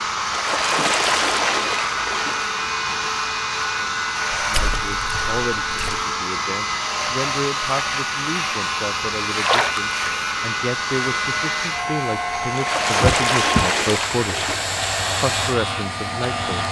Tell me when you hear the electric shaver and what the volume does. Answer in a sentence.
You can hear the electric shaver from 0.0 to 16.6 s, at a steady volume.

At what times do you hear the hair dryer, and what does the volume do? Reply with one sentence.
The hair dryer can be heard from 0.0 to 16.6 s, at a steady volume.